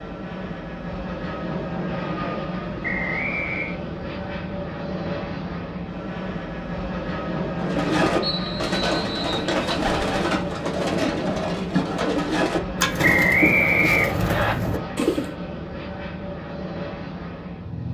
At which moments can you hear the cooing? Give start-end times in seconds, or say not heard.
7.6-15.3.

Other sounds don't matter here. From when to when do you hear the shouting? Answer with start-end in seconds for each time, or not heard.
not heard.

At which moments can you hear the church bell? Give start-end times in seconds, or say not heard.
not heard.